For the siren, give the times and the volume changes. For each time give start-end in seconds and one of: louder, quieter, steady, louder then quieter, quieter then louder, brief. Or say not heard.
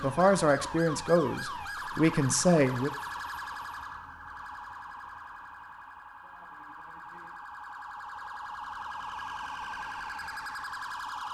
0.0-11.3 quieter then louder.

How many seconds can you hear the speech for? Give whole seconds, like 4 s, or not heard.
3 s.